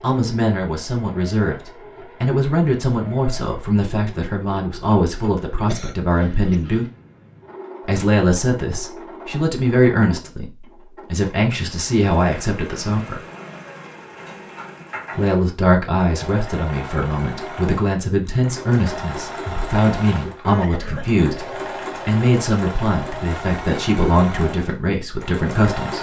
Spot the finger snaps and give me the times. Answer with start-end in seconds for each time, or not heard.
not heard.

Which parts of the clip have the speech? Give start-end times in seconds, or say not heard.
0.0-6.8, 7.8-13.2, 15.2-25.9.